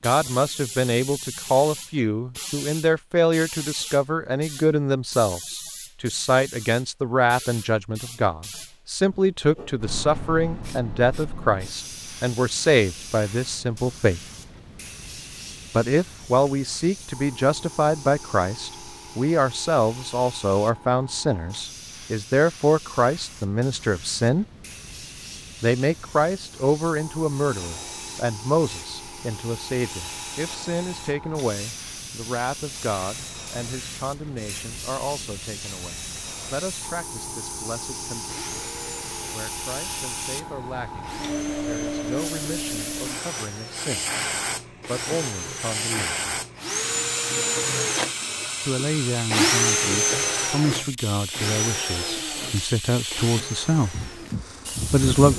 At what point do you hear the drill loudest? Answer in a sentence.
The loudest moment of the drill is at 50 seconds.